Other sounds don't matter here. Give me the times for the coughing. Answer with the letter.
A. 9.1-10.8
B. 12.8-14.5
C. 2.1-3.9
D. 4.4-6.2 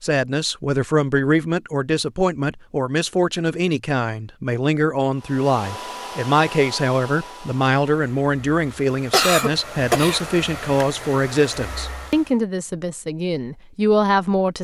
A.